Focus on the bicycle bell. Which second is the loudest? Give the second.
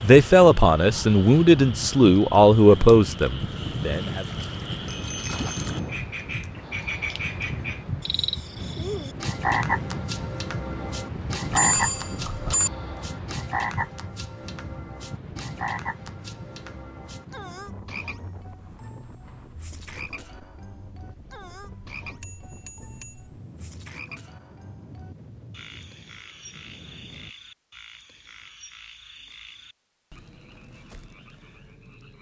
12 s.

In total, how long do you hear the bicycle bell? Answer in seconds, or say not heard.
3 s.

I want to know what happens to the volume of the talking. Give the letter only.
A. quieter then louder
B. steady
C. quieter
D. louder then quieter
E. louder
C.